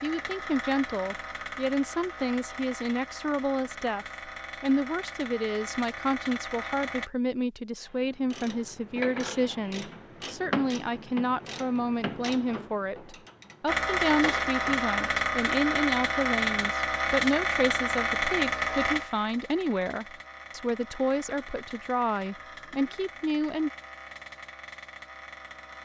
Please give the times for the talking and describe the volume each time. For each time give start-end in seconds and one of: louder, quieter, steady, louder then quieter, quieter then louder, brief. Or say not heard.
0.0-23.7 steady.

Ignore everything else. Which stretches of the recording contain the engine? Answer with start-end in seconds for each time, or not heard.
0.0-7.1, 13.7-25.8.